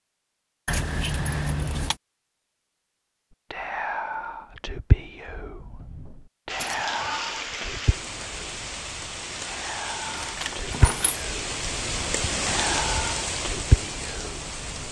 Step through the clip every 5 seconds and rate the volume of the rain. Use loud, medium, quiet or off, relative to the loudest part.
off, loud, loud.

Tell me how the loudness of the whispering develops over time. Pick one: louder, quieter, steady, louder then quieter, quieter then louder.
quieter then louder.